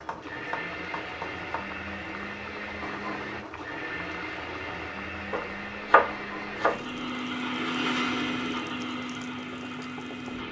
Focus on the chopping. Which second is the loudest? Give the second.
6 s.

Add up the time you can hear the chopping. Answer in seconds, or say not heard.
3 s.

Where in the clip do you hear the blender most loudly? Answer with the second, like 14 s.
8 s.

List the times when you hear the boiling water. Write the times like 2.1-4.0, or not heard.
0.0-10.4.